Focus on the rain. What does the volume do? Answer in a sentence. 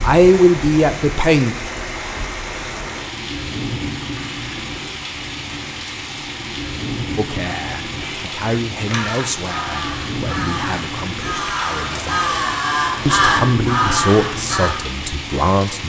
The loudness of the rain stays about the same.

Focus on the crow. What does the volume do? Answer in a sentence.
The volume of the crow goes up.